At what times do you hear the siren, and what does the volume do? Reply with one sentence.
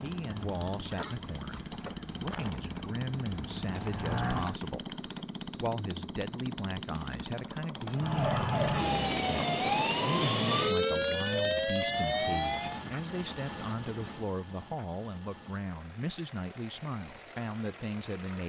The siren can be heard from 0.1 to 4.6 s, getting louder; and from 7.9 to 12.8 s, at a steady volume.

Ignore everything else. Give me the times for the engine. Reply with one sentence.
You can hear the engine from 0.0 to 18.4 s.